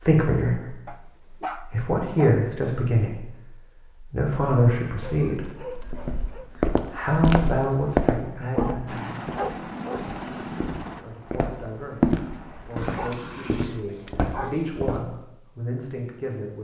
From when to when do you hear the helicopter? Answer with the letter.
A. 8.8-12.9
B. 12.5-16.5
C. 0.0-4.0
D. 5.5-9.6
A.